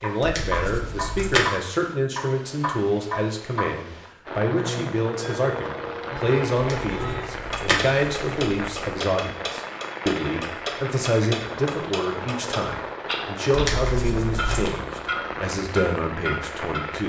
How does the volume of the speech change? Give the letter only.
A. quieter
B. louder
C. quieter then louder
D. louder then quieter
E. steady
E.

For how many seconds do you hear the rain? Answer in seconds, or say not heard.
13 s.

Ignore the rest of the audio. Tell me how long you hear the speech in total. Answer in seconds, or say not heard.
17 s.